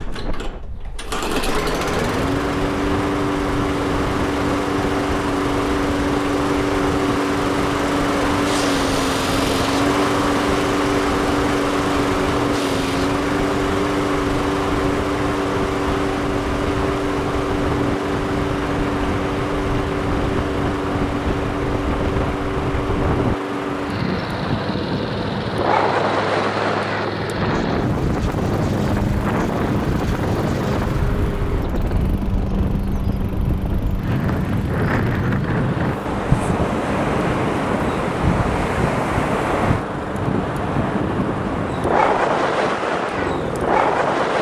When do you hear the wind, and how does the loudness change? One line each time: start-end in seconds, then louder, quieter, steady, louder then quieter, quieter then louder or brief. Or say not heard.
0.0-44.3 louder.